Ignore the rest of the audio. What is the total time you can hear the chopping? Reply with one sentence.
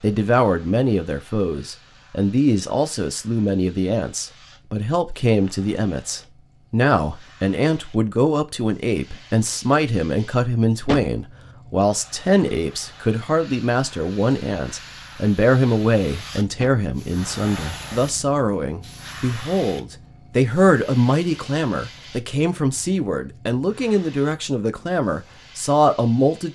You can't hear the chopping here.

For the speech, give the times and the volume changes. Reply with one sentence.
You can hear the speech from 0.0 to 26.5 s, at a steady volume.